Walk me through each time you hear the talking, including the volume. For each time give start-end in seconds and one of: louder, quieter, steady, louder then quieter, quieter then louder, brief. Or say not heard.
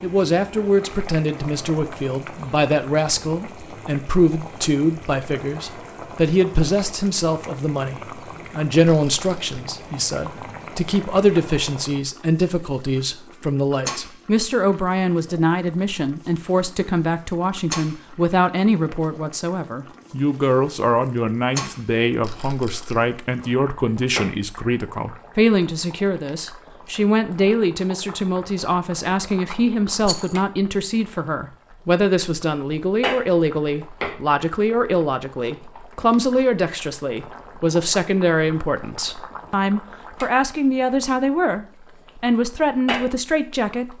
0.0-43.9 steady.